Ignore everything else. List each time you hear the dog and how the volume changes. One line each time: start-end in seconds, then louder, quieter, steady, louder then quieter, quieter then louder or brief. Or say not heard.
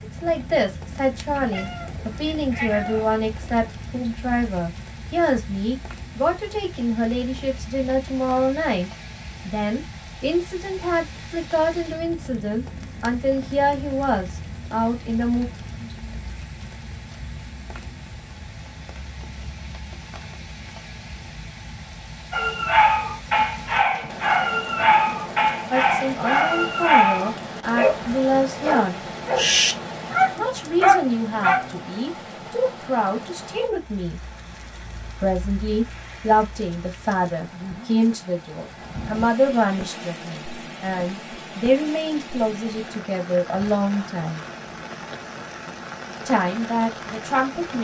22.3-31.9 steady.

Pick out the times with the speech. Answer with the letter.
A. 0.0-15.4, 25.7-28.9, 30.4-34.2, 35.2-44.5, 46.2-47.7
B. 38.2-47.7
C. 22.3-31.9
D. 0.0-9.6
A.